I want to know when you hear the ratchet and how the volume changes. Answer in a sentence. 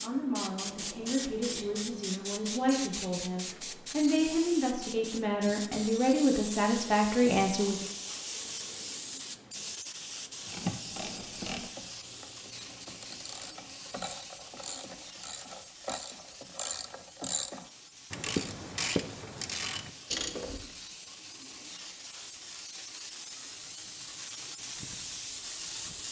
You can hear the ratchet from 10.4 to 20.7 s, getting louder.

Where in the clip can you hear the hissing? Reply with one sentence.
You can hear the hissing from 0.0 to 26.0 s.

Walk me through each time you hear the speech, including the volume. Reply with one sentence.
The speech can be heard from 0.0 to 7.8 s, getting louder.